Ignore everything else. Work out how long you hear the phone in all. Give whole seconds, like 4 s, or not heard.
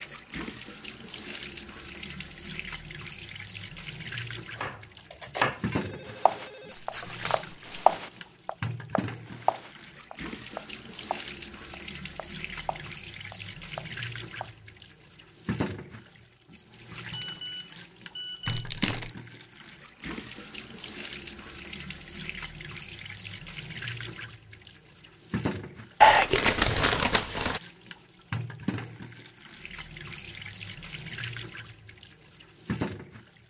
3 s.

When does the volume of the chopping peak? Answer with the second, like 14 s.
8 s.